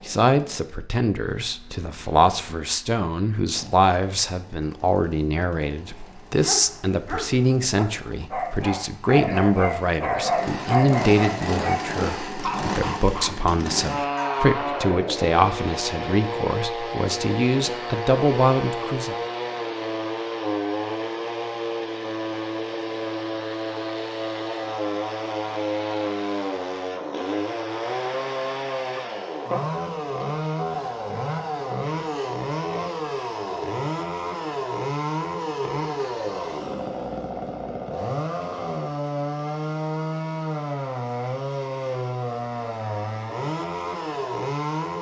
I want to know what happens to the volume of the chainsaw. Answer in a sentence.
The volume of the chainsaw goes up.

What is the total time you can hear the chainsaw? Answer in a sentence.
The chainsaw can be heard for 45 seconds in total.